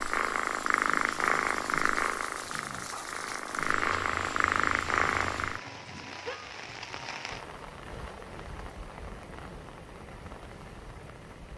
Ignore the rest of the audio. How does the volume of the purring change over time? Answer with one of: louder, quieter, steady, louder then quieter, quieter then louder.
quieter then louder.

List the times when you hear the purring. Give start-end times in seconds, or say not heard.
0.0-5.6.